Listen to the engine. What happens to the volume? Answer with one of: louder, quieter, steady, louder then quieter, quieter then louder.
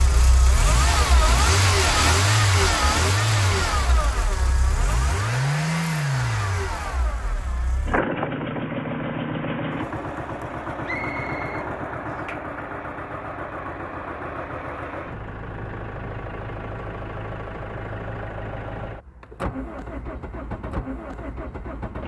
quieter.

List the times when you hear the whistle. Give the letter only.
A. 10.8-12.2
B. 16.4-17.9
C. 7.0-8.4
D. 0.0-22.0
A.